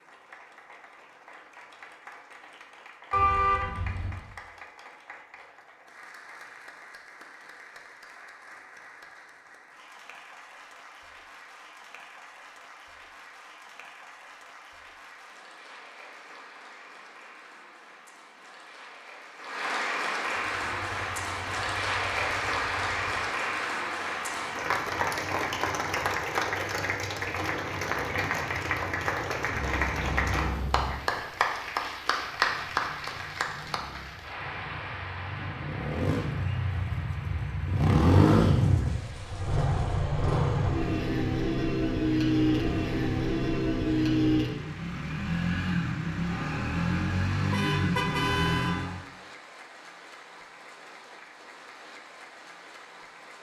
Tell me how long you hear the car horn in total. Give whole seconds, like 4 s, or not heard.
4 s.